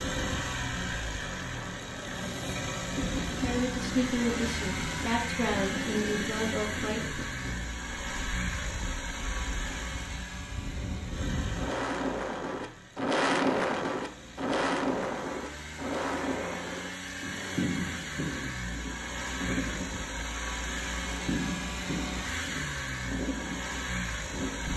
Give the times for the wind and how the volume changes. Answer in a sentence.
The wind can be heard from 0.0 to 24.7 s, getting louder then quieter.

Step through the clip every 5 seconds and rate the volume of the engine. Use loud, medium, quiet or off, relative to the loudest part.
loud, loud, medium, loud, loud.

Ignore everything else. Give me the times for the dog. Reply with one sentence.
You can't hear the dog here.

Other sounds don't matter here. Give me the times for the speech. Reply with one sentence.
The speech can be heard from 3.4 to 7.2 s.